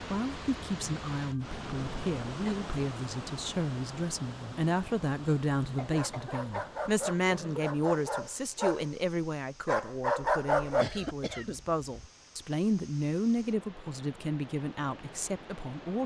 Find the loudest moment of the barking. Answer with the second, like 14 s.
10 s.